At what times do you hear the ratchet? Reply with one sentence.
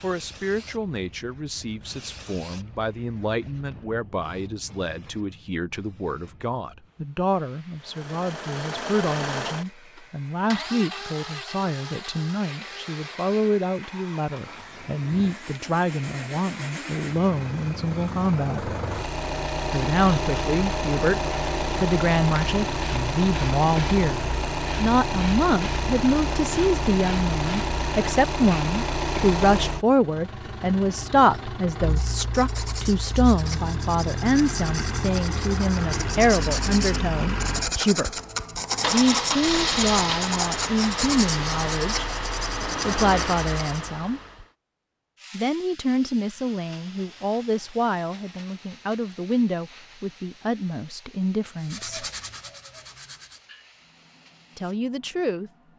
The ratchet can't be heard in this clip.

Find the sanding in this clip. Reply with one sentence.
The sanding can be heard from 31.9 to 43.9 s and from 51.5 to 53.5 s.